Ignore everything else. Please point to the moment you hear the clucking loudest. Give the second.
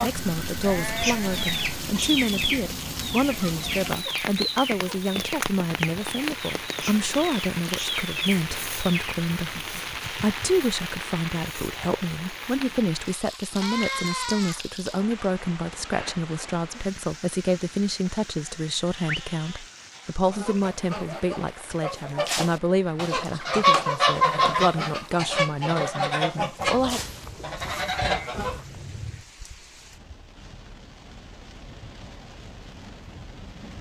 24 s.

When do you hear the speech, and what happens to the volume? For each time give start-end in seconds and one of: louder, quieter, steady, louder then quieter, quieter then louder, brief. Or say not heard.
0.0-27.0 steady.